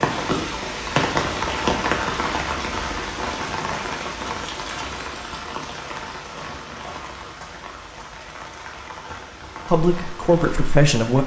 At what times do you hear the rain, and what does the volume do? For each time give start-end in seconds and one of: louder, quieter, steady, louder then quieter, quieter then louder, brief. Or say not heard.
0.0-11.2 quieter.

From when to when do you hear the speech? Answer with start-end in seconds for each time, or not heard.
9.7-11.2.